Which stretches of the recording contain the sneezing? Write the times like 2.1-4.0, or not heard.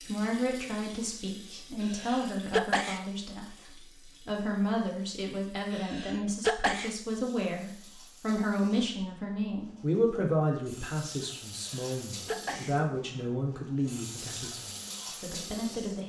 1.8-3.0, 5.7-7.0, 11.6-12.8.